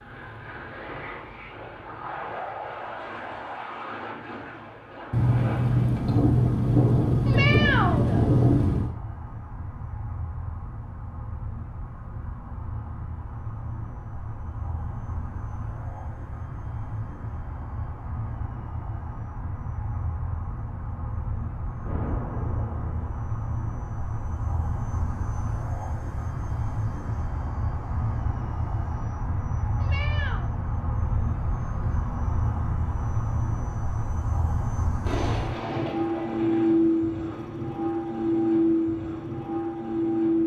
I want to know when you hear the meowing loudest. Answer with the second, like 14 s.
8 s.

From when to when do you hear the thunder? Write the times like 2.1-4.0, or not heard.
5.1-8.9, 21.8-23.1, 35.0-36.6.